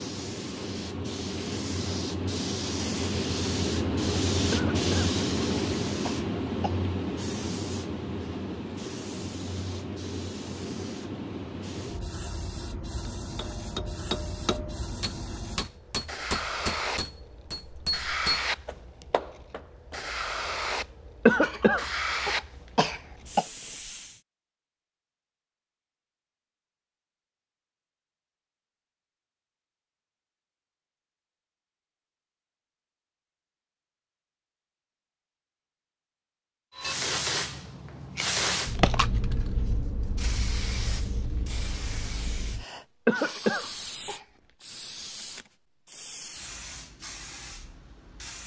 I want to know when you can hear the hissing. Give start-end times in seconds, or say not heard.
0.0-24.2, 36.8-48.4.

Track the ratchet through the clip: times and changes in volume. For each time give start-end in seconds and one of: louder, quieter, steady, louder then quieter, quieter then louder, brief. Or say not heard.
not heard.